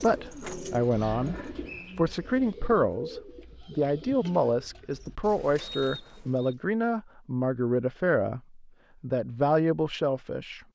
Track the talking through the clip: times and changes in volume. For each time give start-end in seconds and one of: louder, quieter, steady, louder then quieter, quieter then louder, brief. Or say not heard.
0.0-10.6 steady.